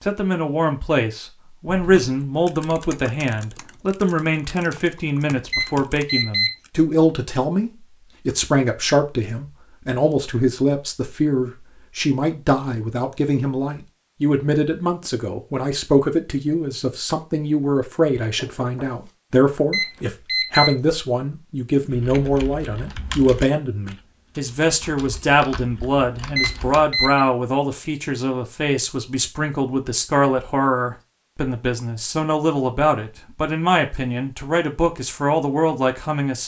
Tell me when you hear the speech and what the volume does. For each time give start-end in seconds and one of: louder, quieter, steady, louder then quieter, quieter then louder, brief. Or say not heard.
0.0-36.4 steady.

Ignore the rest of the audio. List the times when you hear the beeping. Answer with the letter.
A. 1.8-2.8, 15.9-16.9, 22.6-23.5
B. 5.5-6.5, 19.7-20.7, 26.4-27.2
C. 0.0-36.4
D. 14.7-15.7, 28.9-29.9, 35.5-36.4
B.